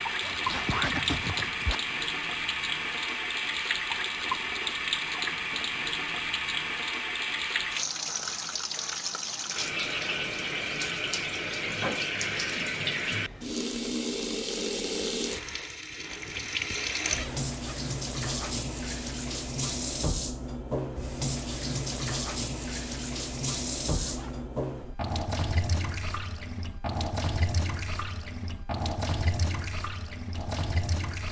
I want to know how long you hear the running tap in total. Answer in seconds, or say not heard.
31 s.